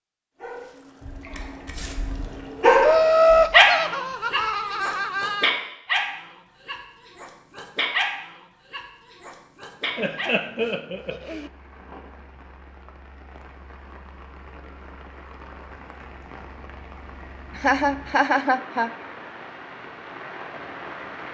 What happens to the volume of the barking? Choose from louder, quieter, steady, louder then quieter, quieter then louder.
louder then quieter.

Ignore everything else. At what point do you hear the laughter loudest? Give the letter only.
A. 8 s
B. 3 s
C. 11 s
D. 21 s
B.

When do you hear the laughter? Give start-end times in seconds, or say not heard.
2.8-5.5, 9.9-11.5, 17.6-18.9.